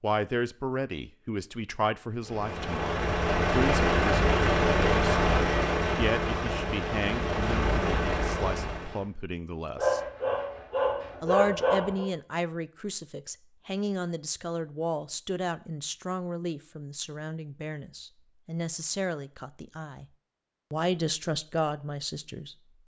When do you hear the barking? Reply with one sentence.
The barking can be heard from 9.8 to 12.1 s.